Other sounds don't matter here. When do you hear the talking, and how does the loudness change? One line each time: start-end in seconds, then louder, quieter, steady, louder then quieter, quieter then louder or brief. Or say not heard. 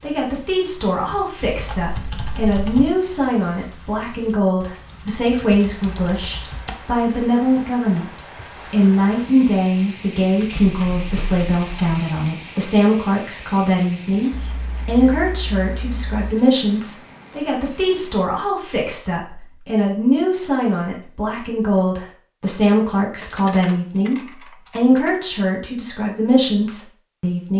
0.0-27.5 steady.